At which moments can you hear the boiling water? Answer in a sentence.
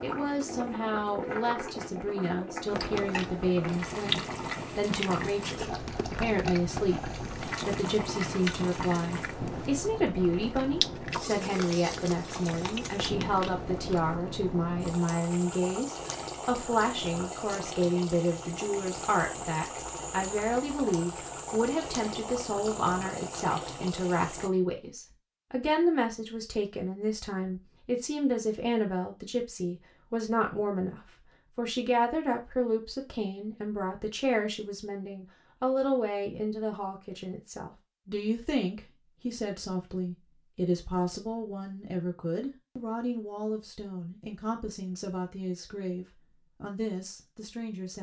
You can hear the boiling water from 0.0 to 24.5 s.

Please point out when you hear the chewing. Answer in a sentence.
You can hear the chewing from 2.7 to 14.2 s.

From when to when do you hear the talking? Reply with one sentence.
The talking can be heard from 0.0 to 47.9 s.